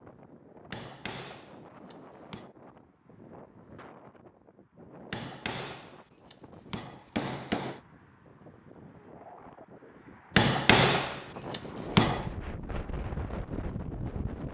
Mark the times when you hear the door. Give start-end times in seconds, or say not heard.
not heard.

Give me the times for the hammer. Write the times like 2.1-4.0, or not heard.
0.7-2.5, 5.1-7.8, 10.3-12.2.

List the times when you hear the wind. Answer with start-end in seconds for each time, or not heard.
0.0-14.5.